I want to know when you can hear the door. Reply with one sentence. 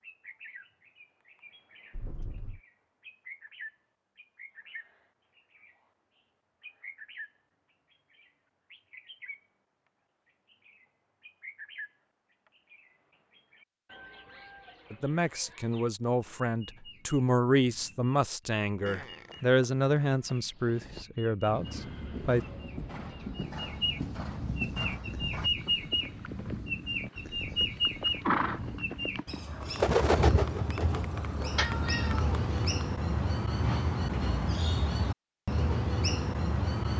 The door can't be heard in this clip.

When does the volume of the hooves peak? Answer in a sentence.
The volume of the hooves peaks at 28 seconds.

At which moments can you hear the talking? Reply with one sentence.
The talking can be heard from 14.9 to 22.4 s.